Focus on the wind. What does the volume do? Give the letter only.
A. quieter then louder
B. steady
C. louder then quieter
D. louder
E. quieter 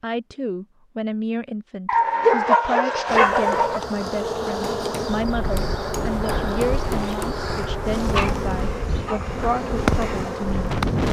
B.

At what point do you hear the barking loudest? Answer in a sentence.
The loudest moment of the barking is at 2 seconds.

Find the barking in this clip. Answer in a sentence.
You can hear the barking from 1.9 to 3.8 s and from 8.0 to 9.2 s.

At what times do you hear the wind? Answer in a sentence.
You can hear the wind from 5.0 to 11.0 s.